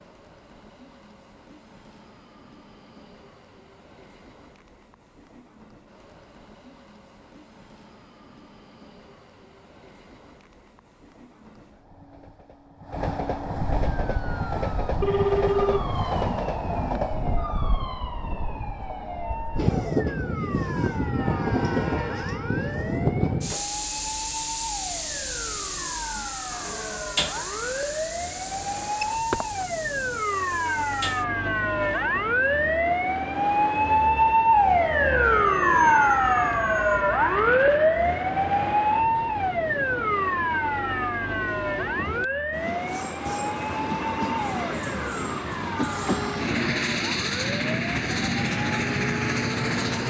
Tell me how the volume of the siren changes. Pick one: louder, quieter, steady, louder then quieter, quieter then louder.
louder then quieter.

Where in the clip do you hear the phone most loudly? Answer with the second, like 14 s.
15 s.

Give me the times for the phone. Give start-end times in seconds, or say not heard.
15.0-15.9, 29.0-29.4.